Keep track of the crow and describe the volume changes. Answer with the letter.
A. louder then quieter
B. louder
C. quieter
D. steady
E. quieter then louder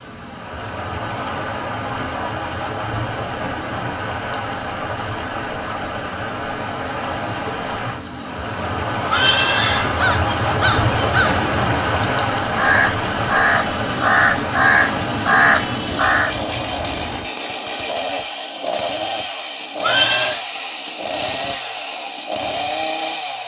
E.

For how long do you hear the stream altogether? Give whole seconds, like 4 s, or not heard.
17 s.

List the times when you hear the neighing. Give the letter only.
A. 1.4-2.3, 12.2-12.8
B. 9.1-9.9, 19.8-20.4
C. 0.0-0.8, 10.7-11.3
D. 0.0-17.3
B.